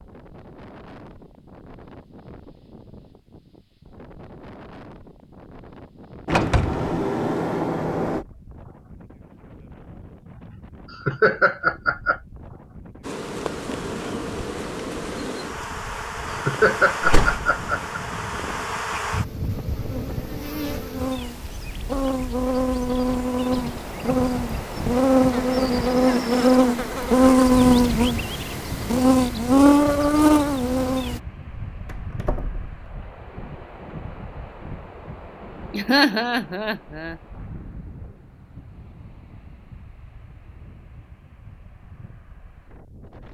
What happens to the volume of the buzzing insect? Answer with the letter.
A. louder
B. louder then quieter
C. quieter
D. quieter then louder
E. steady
A.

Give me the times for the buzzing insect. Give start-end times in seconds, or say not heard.
13.0-31.2.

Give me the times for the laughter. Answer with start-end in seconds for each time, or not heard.
10.9-12.2, 16.3-18.0, 35.7-37.1.